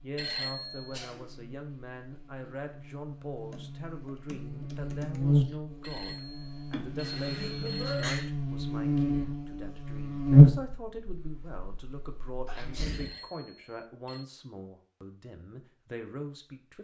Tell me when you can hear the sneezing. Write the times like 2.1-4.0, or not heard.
0.9-1.3, 6.7-8.2, 12.4-13.2.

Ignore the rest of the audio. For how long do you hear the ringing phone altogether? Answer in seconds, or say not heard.
5 s.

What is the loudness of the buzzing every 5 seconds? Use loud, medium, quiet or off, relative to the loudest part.
quiet, medium, loud, off.